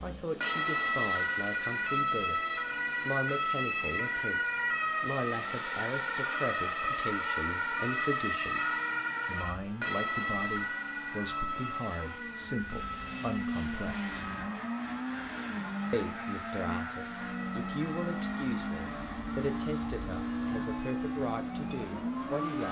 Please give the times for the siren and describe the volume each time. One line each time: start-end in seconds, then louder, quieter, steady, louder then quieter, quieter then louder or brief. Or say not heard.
0.0-22.4 quieter.